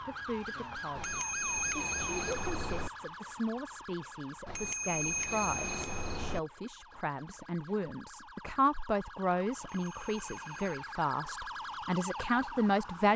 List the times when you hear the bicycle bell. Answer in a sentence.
The bicycle bell can be heard from 0.9 to 2.9 s, from 4.5 to 6.4 s and from 9.6 to 10.8 s.